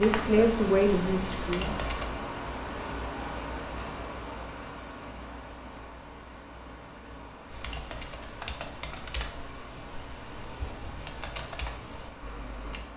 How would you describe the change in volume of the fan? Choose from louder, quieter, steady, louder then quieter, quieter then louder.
quieter.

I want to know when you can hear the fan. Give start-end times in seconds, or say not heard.
0.0-12.9.